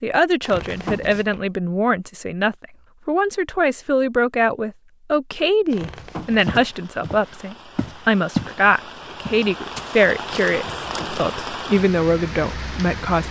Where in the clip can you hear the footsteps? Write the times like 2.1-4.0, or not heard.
6.5-8.6, 9.2-11.2.